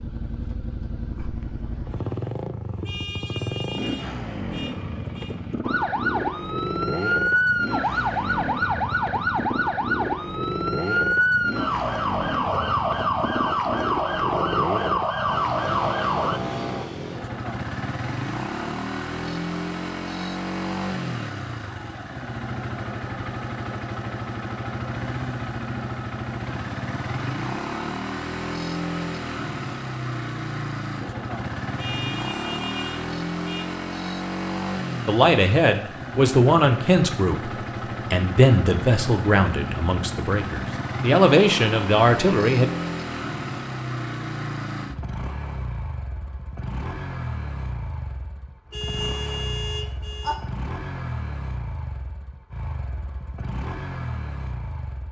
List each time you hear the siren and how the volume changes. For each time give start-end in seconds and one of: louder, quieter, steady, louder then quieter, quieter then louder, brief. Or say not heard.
5.6-16.4 steady.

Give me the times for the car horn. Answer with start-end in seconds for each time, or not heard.
2.8-5.3, 31.8-33.7, 48.7-50.4.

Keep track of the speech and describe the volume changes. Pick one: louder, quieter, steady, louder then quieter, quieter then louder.
quieter then louder.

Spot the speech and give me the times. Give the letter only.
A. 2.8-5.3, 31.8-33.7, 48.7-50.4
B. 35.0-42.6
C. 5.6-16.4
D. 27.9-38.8
B.